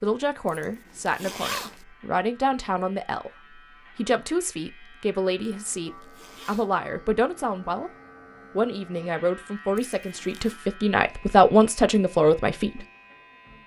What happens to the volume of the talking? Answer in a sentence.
The volume of the talking goes up.